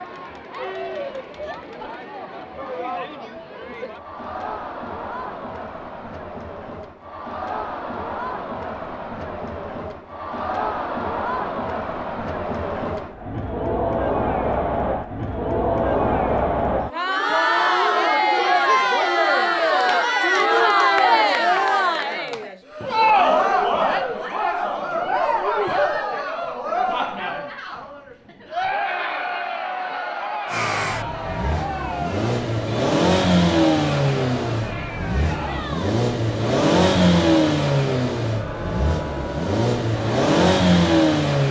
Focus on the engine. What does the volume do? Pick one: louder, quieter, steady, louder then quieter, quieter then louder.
louder.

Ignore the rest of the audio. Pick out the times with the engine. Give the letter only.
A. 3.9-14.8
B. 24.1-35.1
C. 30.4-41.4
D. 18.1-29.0
C.